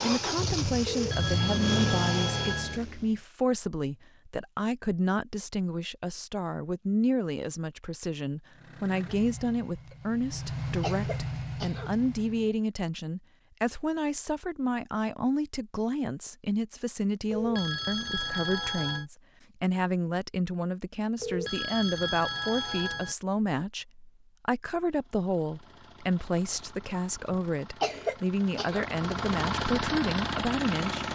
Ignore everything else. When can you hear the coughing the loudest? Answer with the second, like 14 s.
28 s.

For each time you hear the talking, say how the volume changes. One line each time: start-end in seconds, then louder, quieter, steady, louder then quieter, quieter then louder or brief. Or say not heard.
0.0-31.1 steady.